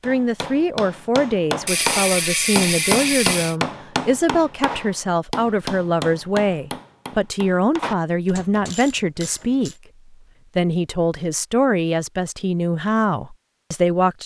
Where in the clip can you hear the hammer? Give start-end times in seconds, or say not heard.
0.0-8.8.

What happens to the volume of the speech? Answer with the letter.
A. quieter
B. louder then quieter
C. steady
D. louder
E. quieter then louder
C.